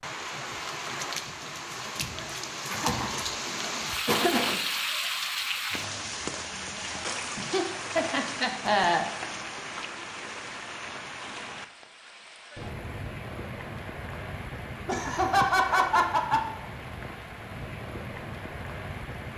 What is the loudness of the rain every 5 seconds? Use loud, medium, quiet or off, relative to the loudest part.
loud, loud, medium, medium.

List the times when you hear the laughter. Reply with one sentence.
The laughter can be heard from 2.6 to 3.2 s, from 4.0 to 4.6 s, from 7.3 to 9.1 s and from 14.8 to 16.4 s.